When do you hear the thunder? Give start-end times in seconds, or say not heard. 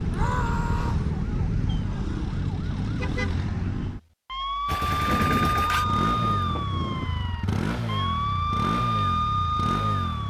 5.0-7.1.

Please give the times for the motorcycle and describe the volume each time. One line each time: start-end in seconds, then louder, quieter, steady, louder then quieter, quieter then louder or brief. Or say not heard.
0.0-1.9 brief
4.7-10.2 steady.